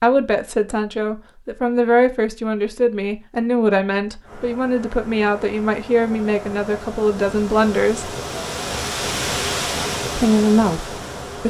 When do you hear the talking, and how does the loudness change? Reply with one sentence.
You can hear the talking from 0.0 to 8.2 s, at a steady volume; and briefly from 10.2 to 11.4 s.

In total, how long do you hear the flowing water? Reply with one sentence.
You can hear the flowing water for 7 seconds altogether.